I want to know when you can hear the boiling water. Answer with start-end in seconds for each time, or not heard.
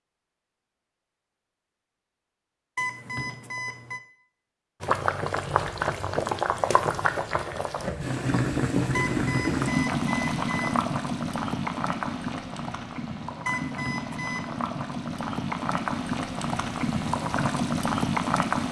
4.8-18.6.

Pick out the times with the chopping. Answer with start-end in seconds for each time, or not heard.
not heard.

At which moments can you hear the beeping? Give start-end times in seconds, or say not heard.
2.8-4.0, 8.9-10.8, 13.4-14.6.